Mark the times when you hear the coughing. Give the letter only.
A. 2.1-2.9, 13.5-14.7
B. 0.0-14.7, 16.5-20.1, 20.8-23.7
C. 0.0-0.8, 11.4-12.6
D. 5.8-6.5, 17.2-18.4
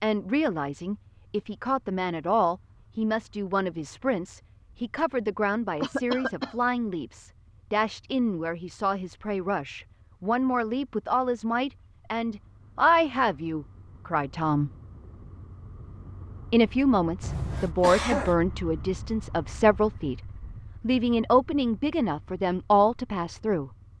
D.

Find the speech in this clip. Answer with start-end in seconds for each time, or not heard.
0.0-14.7, 16.5-20.1, 20.8-23.7.